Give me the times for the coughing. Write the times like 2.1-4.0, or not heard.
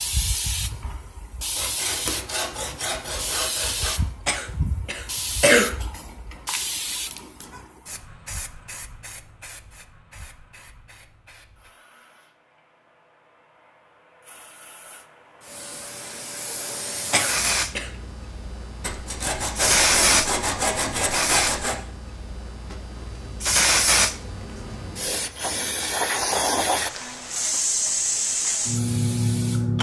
4.2-5.8, 17.1-17.9.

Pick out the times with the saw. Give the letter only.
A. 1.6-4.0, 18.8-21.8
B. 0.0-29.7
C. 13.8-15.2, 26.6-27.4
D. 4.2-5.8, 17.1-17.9
A.